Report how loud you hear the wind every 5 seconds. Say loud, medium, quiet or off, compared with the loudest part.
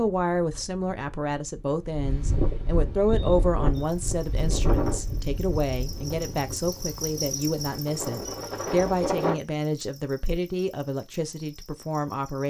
loud, loud, off.